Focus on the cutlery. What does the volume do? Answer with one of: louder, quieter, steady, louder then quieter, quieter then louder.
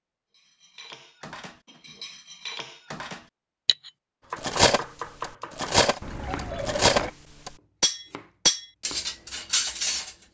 louder.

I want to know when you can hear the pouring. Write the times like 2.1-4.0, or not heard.
6.0-7.1.